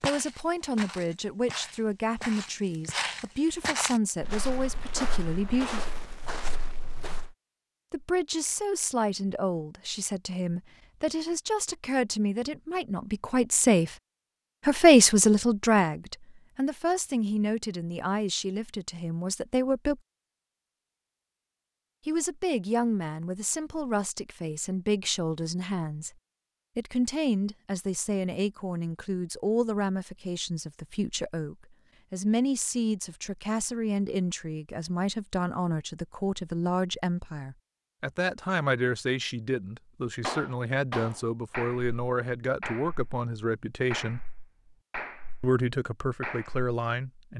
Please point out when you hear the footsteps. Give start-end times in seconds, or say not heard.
0.0-7.3.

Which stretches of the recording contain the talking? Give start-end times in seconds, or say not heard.
0.0-5.8, 7.9-13.9, 14.7-20.0, 22.1-26.1, 26.8-44.2, 45.4-47.3.